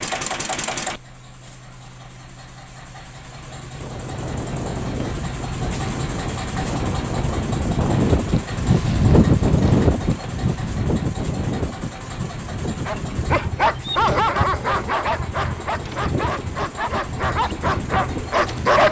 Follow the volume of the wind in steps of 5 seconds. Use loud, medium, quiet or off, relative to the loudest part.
medium, loud, medium, medium.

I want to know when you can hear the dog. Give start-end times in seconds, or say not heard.
12.8-18.8.